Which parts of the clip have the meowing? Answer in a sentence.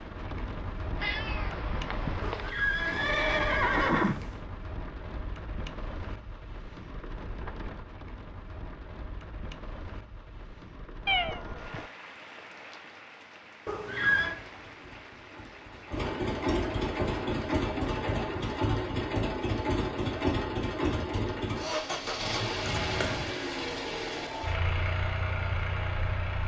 The meowing can be heard from 0.9 to 2.5 s, from 11.1 to 11.8 s and from 22.6 to 23.3 s.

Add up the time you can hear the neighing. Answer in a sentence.
You can hear the neighing for 3 seconds altogether.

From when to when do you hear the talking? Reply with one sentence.
You can't hear the talking here.